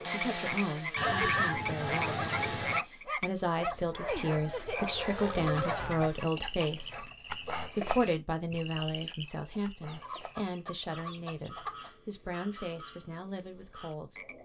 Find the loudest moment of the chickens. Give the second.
1 s.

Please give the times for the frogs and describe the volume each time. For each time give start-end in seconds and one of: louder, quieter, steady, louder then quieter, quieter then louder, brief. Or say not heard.
0.0-14.4 quieter.